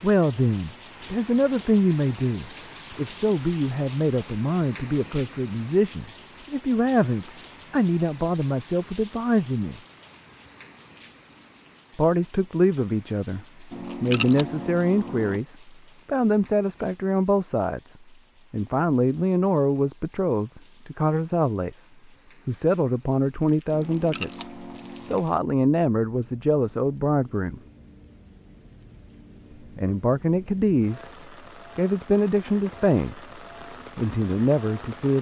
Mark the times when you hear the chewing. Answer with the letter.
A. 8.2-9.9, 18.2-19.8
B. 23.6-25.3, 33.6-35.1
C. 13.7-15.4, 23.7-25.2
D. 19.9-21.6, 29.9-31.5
C.